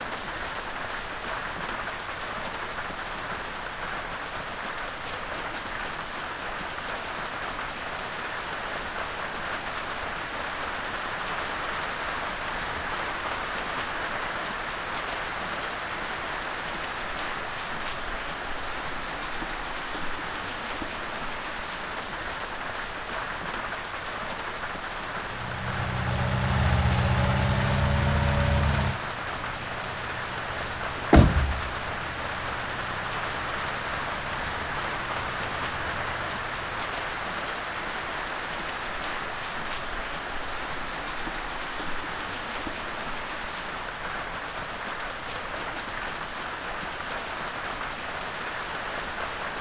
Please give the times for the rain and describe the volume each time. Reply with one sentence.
The rain can be heard from 0.0 to 49.5 s, at a steady volume.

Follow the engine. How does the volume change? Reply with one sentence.
The volume of the engine goes down.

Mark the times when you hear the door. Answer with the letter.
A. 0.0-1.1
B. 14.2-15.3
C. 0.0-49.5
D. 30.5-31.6
D.